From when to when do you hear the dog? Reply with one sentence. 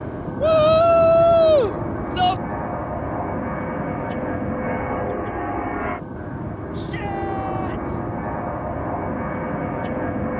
The dog can't be heard in this clip.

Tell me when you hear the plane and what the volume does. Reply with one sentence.
You can hear the plane from 0.0 to 10.3 s, at a steady volume.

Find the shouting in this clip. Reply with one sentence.
The shouting can be heard from 0.4 to 2.4 s and from 6.7 to 8.0 s.